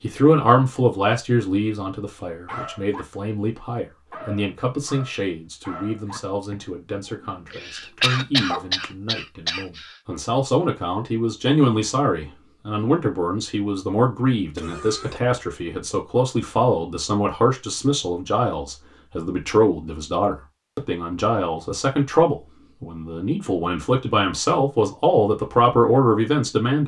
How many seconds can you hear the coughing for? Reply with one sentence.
You can hear the coughing for 3 seconds altogether.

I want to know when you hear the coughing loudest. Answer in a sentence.
The volume of the coughing peaks at 8 seconds.